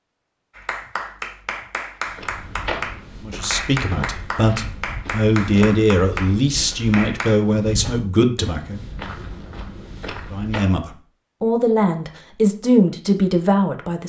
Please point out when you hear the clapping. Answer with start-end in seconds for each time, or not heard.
0.6-7.4.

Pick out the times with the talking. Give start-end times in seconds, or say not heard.
3.2-8.8, 10.3-14.0.